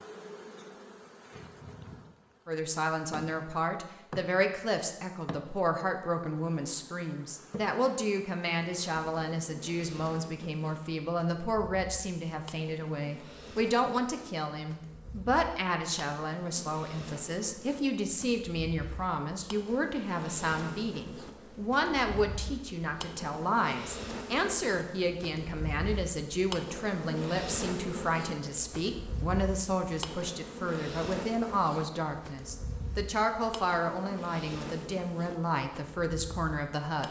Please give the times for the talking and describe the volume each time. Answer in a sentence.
You can hear the talking from 2.5 to 37.0 s, at a steady volume.